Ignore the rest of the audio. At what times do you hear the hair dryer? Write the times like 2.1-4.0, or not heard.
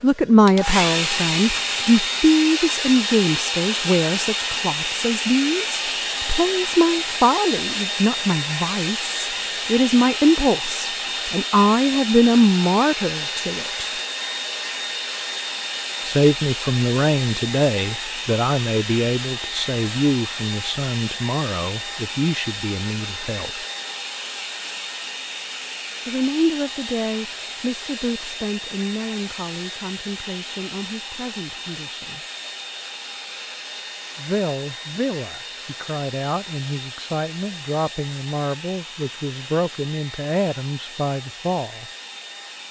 0.0-42.6.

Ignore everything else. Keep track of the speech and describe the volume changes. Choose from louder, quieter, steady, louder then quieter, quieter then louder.
quieter.